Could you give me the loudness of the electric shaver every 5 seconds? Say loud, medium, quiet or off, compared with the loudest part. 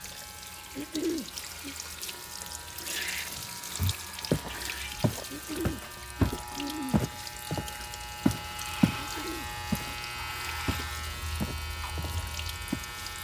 medium, loud, loud.